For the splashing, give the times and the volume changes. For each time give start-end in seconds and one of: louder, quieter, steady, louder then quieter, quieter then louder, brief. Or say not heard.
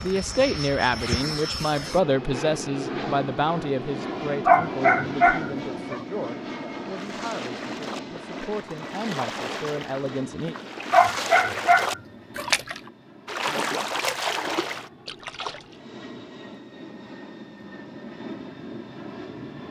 6.8-15.8 louder.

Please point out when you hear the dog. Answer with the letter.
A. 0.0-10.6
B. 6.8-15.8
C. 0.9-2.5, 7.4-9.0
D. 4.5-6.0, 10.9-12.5
D.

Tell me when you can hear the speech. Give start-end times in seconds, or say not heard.
0.0-10.6.